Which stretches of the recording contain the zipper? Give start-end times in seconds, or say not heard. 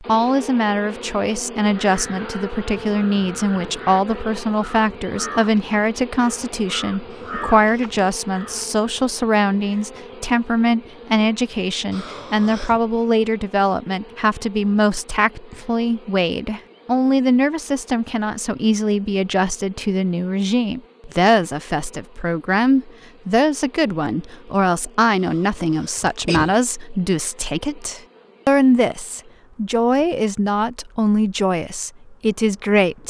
not heard.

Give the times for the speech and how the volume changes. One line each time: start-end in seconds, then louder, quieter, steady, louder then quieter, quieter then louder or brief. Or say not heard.
0.0-33.0 steady.